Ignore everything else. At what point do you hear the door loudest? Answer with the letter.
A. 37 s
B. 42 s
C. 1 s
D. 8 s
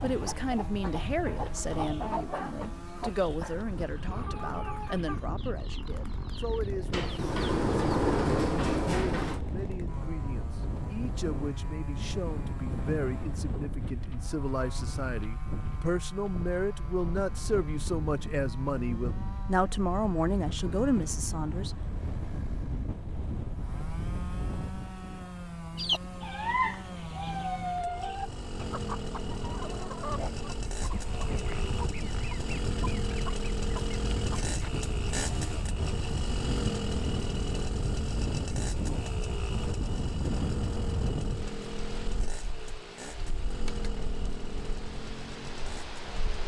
D.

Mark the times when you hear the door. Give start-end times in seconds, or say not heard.
6.9-9.4.